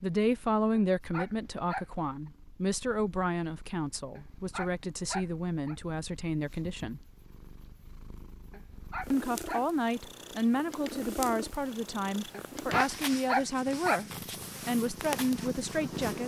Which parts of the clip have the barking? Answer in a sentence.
The barking can be heard from 0.8 to 1.9 s, from 4.2 to 5.8 s, from 8.5 to 10.1 s and from 12.3 to 14.0 s.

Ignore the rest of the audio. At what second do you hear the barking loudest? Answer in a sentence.
The loudest moment of the barking is at 13 seconds.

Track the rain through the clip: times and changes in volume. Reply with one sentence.
The rain can't be heard in this clip.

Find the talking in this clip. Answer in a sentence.
The talking can be heard from 0.0 to 7.0 s and from 9.1 to 16.2 s.